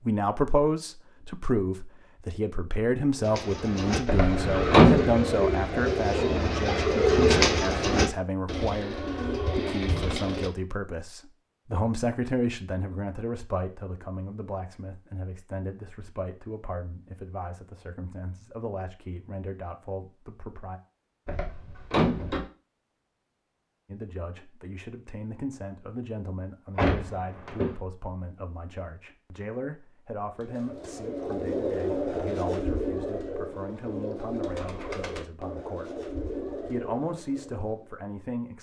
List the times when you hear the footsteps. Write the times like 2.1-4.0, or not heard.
not heard.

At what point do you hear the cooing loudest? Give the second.
7 s.